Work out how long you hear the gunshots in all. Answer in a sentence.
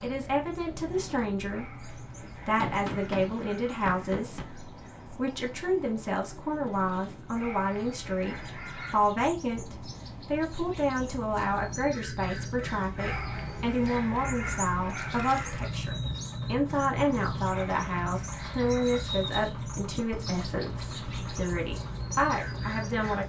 The gunshots can be heard for 2 seconds in total.